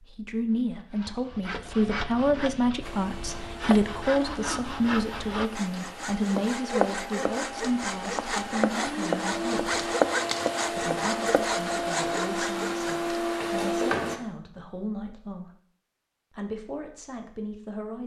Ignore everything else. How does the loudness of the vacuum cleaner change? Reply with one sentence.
The volume of the vacuum cleaner goes up.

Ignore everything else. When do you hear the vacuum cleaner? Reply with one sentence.
The vacuum cleaner can be heard from 2.8 to 14.2 s.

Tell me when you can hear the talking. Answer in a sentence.
You can hear the talking from 0.0 to 9.8 s, from 10.7 to 15.6 s and from 16.3 to 18.0 s.